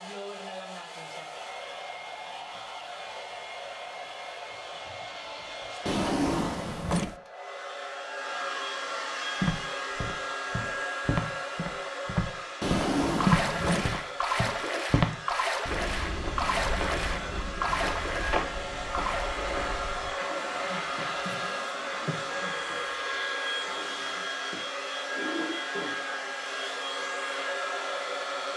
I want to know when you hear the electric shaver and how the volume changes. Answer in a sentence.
You can't hear the electric shaver here.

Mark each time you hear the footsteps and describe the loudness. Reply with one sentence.
You can hear the footsteps from 9.4 to 20.1 s, getting louder then quieter.